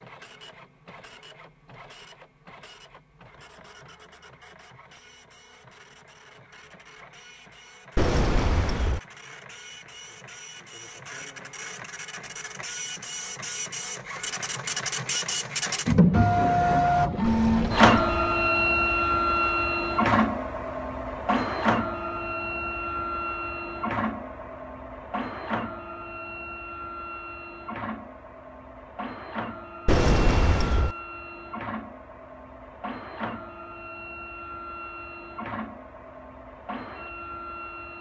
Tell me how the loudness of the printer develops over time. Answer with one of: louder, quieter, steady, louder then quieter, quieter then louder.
louder then quieter.